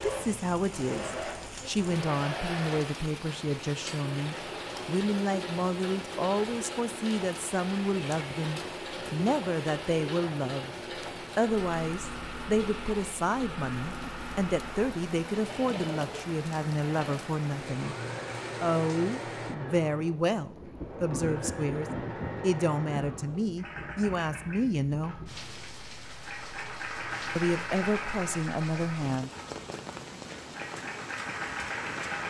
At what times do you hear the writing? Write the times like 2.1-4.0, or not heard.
not heard.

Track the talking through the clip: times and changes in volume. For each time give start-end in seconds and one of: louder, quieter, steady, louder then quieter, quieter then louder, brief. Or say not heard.
0.0-10.8 steady
11.3-17.9 steady
18.6-25.3 steady
27.4-29.3 brief.